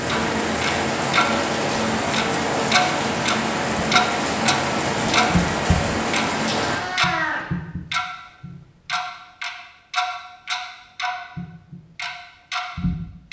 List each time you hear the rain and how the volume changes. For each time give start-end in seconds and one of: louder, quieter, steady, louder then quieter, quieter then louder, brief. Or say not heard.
0.0-6.8 steady.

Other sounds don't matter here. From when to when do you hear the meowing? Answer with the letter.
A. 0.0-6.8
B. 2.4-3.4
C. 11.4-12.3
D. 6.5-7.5
D.